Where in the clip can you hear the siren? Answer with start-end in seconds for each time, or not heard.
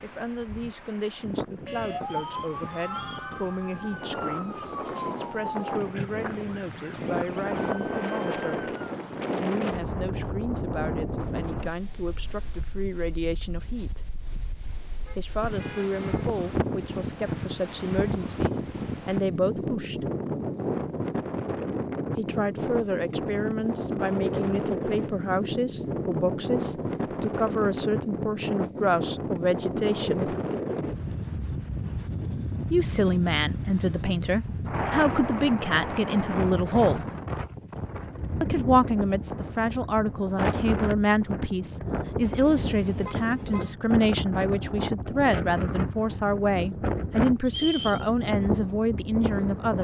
1.6-8.8.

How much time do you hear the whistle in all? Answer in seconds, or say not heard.
2 s.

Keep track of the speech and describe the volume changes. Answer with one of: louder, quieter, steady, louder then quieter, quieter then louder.
louder.